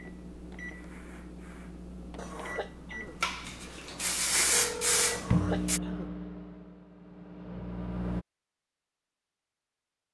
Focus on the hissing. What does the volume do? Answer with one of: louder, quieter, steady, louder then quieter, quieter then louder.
louder.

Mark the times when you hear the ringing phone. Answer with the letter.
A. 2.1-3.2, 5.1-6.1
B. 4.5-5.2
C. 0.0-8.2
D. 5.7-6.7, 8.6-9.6
B.